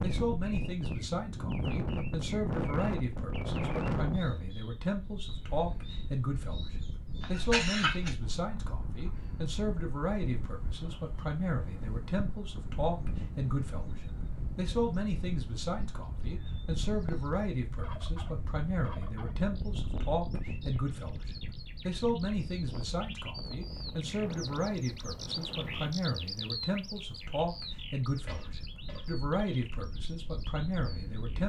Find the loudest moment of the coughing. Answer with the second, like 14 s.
8 s.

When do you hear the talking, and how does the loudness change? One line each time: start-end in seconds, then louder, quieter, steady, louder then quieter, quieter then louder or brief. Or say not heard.
0.0-31.4 steady.